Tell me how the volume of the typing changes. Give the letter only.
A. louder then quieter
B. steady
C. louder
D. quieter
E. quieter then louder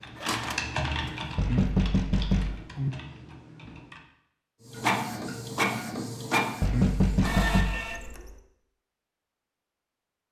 D.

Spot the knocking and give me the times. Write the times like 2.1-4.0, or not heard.
1.4-2.9, 6.6-7.8.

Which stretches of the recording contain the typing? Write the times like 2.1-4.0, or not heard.
0.0-4.0.